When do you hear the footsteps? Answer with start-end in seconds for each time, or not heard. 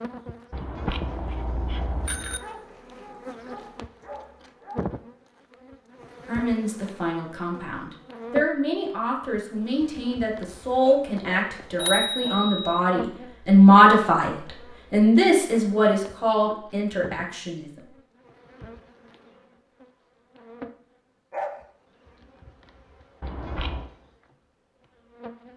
not heard.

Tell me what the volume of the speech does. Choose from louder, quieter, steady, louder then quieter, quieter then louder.
louder then quieter.